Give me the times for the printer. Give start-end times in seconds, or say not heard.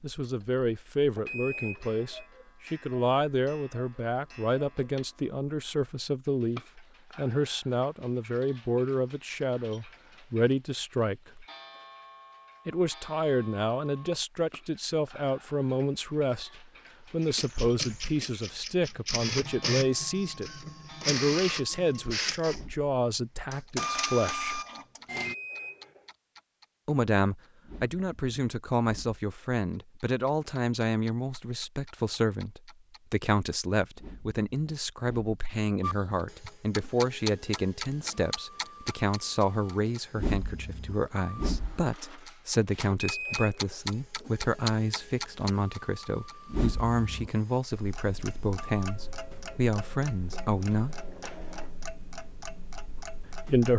17.2-25.4, 35.8-51.9.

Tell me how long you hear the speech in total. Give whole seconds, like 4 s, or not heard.
48 s.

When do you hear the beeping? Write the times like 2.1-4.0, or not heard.
1.1-2.2, 25.1-26.1, 42.9-43.9.